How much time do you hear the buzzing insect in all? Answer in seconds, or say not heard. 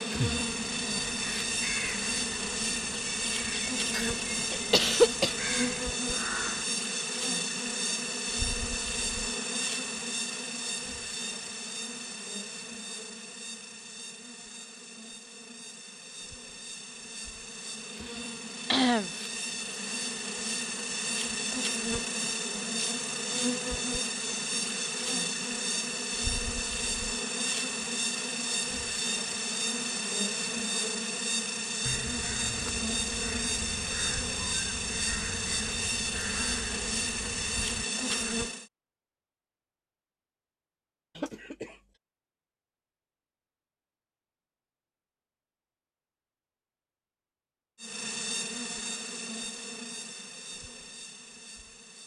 43 s.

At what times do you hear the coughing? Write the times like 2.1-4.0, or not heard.
3.9-5.3, 18.7-19.1, 41.1-41.8.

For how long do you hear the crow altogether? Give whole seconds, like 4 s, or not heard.
13 s.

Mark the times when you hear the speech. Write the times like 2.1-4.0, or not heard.
not heard.